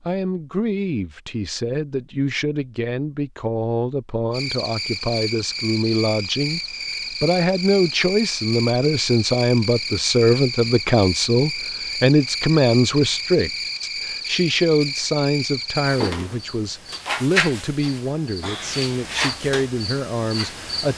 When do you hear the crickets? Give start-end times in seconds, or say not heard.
4.3-20.9.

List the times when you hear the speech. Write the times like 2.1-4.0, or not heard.
0.0-20.9.